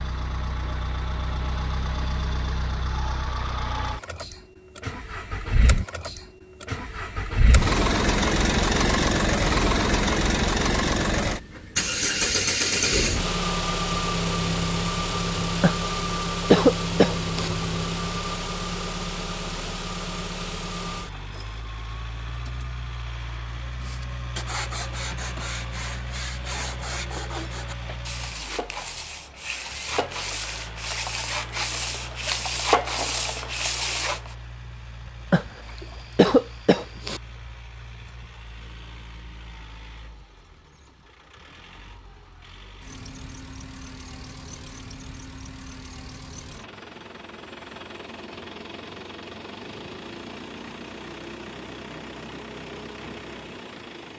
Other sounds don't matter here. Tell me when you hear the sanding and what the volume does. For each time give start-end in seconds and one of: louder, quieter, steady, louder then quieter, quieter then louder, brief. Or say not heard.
23.8-34.4 louder.